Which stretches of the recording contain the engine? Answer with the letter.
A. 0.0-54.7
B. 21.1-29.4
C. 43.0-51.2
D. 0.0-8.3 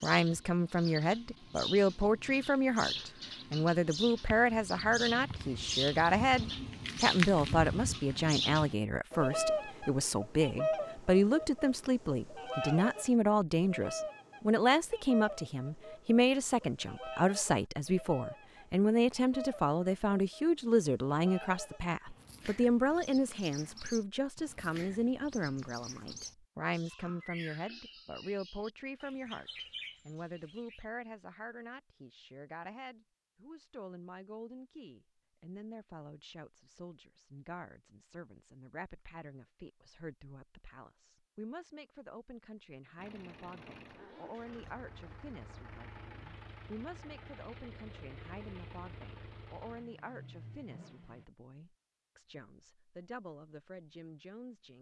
C.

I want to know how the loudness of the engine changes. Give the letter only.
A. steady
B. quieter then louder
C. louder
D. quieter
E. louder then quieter
A.